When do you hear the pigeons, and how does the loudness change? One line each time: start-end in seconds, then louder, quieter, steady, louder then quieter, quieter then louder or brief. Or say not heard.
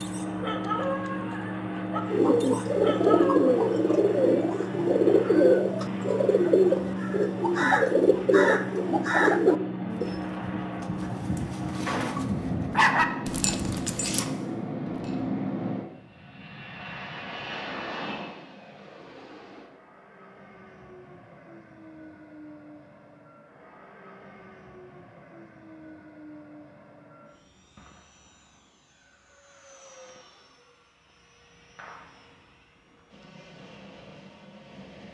2.0-10.2 steady.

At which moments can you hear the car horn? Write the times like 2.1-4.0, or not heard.
not heard.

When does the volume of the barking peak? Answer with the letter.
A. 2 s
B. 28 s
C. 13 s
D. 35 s
C.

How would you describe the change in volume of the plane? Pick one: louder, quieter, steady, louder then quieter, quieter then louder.
quieter.